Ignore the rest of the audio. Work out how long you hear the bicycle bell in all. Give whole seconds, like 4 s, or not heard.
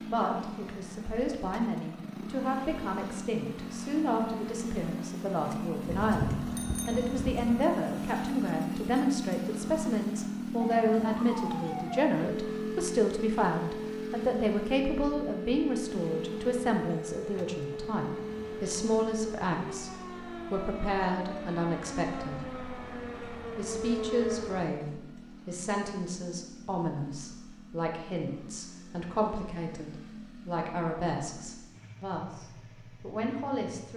2 s.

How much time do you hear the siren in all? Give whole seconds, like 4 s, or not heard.
14 s.